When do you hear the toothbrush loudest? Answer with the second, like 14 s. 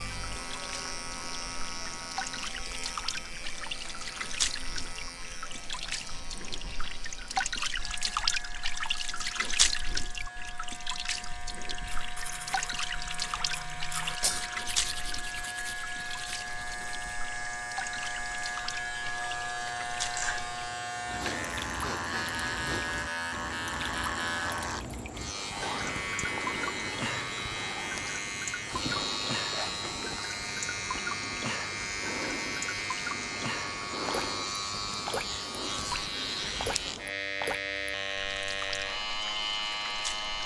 14 s.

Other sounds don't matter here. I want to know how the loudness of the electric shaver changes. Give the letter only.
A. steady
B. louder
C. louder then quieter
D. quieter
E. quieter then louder
B.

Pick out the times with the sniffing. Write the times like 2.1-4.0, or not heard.
21.1-22.9.